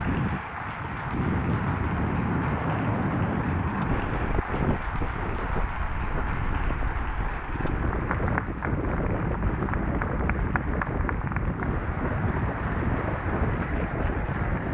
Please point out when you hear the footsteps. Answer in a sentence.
You can't hear the footsteps here.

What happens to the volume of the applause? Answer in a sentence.
The volume of the applause stays about the same.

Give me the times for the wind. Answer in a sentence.
The wind can be heard from 0.0 to 14.6 s.